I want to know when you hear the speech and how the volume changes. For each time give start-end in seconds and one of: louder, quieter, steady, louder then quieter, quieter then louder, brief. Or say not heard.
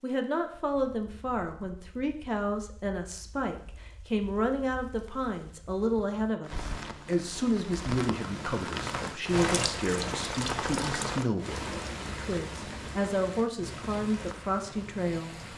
0.0-15.5 steady.